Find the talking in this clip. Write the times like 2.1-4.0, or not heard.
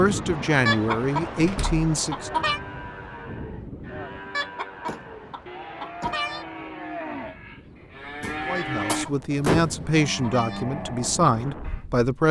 0.0-2.5, 8.4-12.2.